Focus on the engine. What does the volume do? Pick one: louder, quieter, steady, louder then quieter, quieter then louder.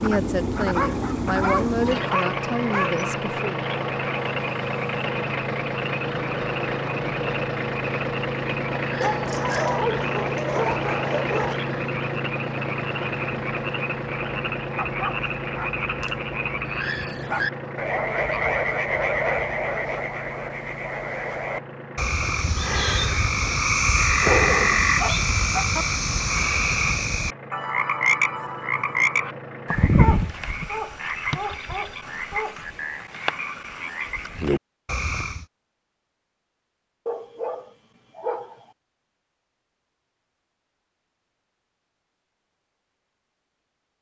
quieter.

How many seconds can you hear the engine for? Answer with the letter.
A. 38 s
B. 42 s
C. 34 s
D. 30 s
D.